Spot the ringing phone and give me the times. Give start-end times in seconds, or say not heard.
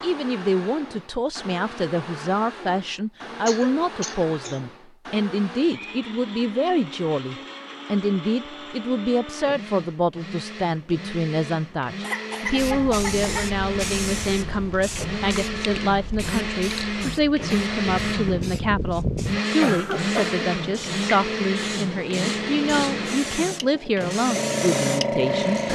not heard.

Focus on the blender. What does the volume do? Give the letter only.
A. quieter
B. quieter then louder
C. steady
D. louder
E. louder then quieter
D.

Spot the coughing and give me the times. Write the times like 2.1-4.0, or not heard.
3.5-4.6, 12.0-13.5, 19.6-20.4.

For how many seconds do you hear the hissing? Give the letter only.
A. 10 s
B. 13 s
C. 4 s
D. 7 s
B.